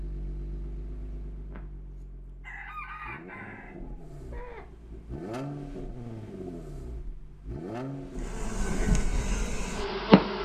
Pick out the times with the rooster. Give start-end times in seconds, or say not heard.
1.5-4.7.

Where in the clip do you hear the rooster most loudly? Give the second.
3 s.